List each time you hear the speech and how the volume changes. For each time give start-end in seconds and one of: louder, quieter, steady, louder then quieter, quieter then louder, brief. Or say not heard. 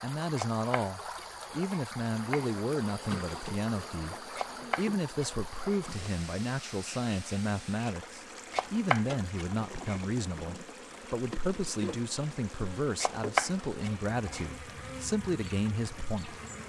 0.0-16.4 steady.